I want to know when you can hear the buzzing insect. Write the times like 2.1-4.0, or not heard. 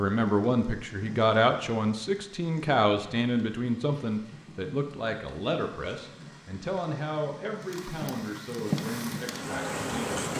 8.7-10.3.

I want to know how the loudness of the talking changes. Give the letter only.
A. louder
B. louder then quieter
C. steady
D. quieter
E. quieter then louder
D.